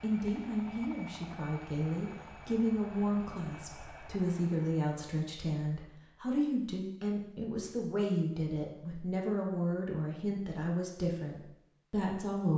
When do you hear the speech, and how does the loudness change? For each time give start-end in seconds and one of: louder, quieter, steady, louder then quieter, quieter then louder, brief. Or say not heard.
0.0-12.5 steady.